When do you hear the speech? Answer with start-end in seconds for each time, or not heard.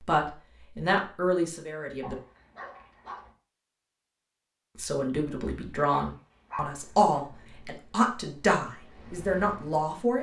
0.1-2.1, 4.8-10.1.